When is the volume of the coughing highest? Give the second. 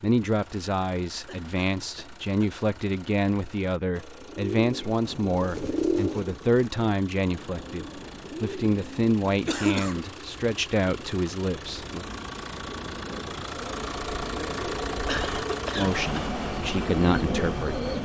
10 s.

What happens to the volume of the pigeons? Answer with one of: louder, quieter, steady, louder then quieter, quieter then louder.
quieter then louder.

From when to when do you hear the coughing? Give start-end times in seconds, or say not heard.
1.2-2.5, 9.2-10.2, 15.1-16.2.